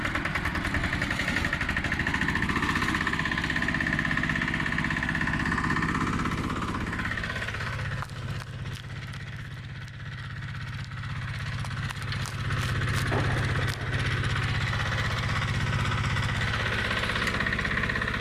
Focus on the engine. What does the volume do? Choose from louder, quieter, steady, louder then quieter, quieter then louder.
quieter then louder.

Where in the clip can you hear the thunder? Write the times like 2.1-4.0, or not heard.
13.1-14.1.